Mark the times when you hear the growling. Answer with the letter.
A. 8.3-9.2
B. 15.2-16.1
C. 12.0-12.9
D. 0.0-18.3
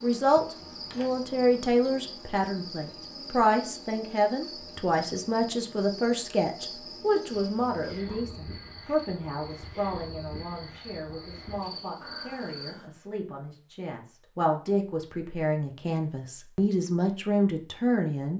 C.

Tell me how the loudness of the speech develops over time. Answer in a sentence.
The volume of the speech goes down, then up.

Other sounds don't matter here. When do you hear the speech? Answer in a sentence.
The speech can be heard from 0.0 to 18.3 s.